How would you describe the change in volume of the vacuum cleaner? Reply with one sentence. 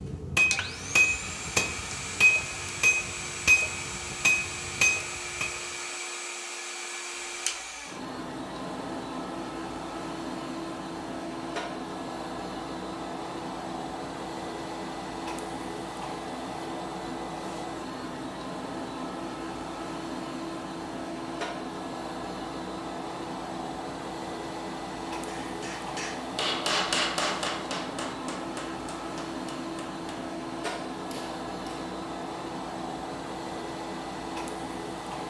The volume of the vacuum cleaner stays about the same.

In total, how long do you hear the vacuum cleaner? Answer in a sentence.
The vacuum cleaner can be heard for 35 seconds in total.